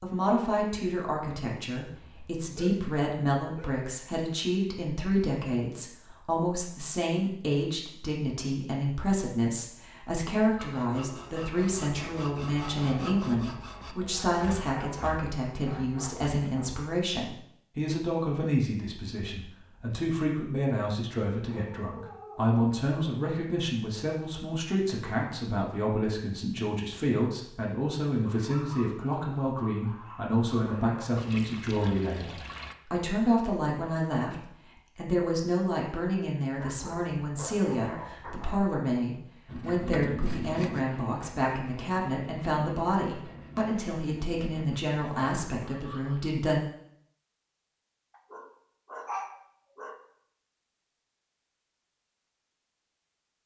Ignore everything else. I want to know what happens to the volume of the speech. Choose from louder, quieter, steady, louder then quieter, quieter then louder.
steady.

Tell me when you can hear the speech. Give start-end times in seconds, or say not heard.
0.0-46.6.